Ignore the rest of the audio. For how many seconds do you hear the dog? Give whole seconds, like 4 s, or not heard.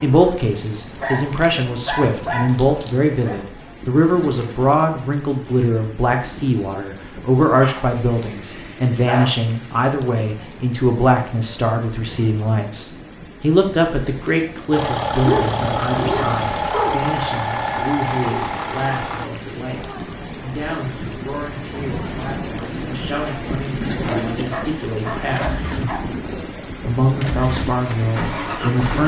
8 s.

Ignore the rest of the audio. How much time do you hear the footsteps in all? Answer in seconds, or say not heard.
not heard.